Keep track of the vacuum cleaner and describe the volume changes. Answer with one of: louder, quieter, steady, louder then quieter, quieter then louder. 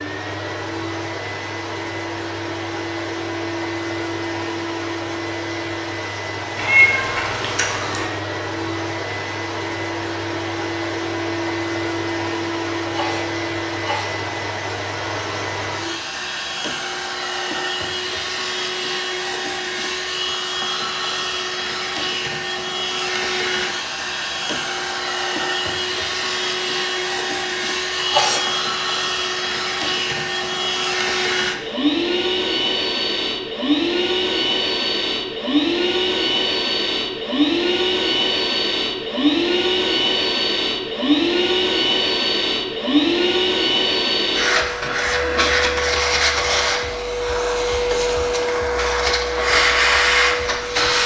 louder.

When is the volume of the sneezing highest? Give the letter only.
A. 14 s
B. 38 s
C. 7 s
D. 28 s
D.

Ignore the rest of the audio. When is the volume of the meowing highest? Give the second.
7 s.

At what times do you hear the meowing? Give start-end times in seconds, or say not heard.
6.5-8.1.